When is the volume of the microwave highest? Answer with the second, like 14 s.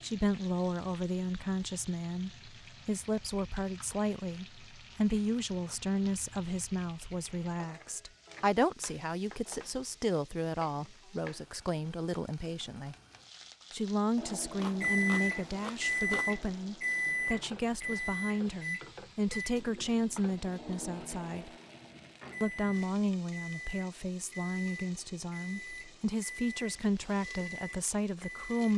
15 s.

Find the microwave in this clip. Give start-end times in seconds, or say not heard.
14.2-28.7.